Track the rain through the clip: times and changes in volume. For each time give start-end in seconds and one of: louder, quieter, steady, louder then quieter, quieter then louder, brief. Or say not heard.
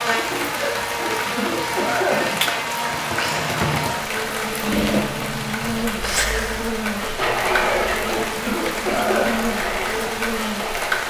0.0-11.0 steady.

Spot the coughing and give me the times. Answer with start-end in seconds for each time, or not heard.
0.6-2.5, 7.7-9.4.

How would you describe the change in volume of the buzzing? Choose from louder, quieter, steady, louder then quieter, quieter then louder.
steady.